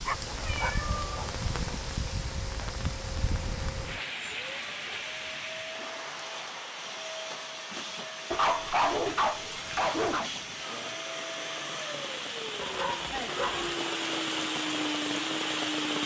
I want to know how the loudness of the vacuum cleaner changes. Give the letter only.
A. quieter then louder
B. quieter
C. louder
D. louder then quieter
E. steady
C.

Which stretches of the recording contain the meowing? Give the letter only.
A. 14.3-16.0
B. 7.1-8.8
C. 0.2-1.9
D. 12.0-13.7
C.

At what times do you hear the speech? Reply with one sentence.
You can't hear the speech here.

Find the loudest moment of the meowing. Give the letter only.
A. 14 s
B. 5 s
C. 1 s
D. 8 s
C.